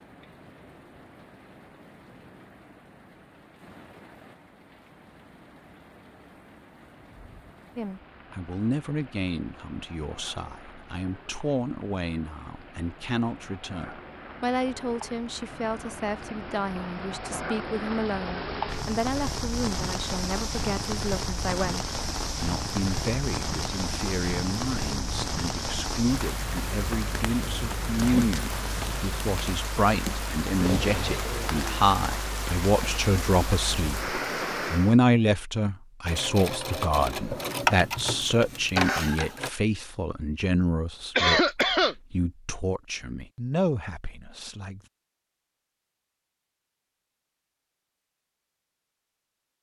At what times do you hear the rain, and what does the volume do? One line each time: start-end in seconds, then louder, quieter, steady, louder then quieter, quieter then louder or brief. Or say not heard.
0.0-35.0 louder.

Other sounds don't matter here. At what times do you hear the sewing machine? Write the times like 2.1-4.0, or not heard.
36.0-39.5.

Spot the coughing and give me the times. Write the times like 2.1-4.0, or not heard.
41.1-42.0.